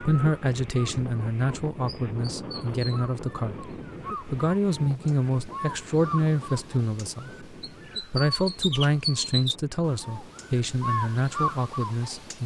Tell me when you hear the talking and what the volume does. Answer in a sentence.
The talking can be heard from 0.0 to 12.4 s, at a steady volume.